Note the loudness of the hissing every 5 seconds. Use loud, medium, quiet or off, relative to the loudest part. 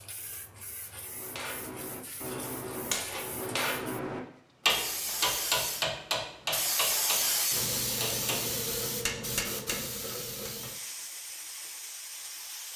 quiet, loud, medium.